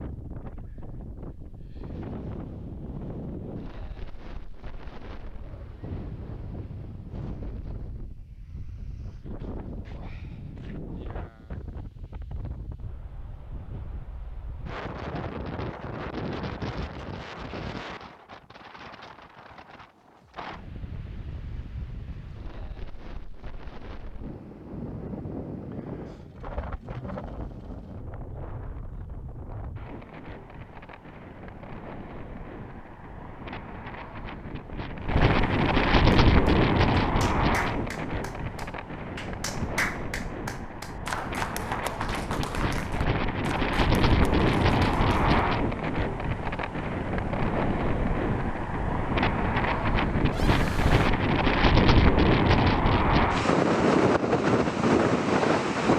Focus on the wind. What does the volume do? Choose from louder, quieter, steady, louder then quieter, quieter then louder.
louder.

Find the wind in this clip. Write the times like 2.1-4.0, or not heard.
0.0-55.9.